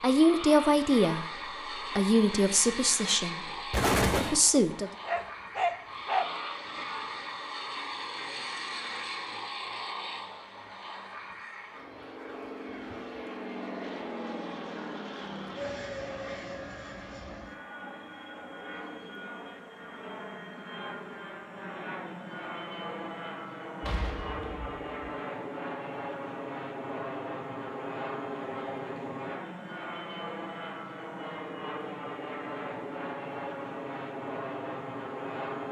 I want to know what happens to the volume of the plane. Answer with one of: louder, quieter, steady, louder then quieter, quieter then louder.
steady.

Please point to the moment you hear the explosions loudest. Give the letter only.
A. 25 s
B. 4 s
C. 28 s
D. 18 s
B.